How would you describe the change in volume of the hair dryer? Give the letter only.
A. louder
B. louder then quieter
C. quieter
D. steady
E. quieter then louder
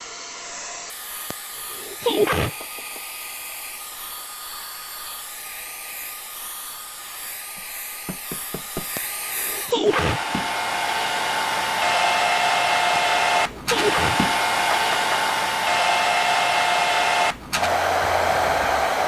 A.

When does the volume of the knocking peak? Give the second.
15 s.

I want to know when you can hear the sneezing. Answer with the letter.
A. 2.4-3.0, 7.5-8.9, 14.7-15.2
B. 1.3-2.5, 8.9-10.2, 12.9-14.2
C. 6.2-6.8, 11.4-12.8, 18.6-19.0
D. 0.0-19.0
B.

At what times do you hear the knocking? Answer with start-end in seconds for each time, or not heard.
2.4-3.0, 7.5-8.9, 14.7-15.2.